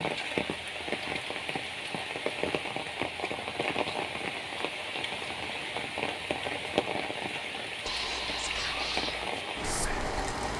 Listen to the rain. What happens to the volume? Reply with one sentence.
The loudness of the rain stays about the same.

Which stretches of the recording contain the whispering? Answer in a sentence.
You can hear the whispering from 7.8 to 10.5 s.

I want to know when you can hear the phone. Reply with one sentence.
The phone can't be heard in this clip.